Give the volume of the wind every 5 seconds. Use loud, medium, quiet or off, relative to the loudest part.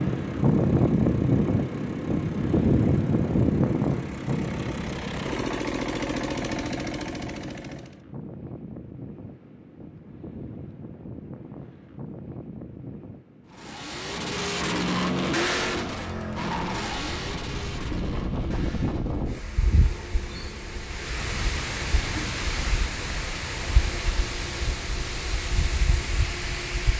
loud, quiet, quiet, medium, medium, medium.